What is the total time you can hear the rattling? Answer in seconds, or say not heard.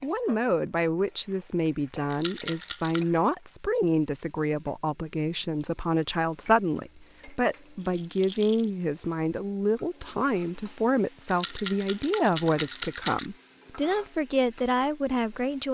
4 s.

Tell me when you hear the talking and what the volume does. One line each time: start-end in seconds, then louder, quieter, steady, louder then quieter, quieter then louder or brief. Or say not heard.
0.0-15.6 steady.